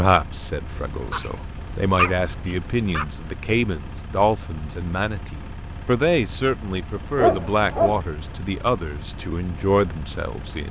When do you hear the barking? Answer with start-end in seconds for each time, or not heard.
0.9-3.0, 7.2-8.0.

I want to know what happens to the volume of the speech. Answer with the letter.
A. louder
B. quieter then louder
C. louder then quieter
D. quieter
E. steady
E.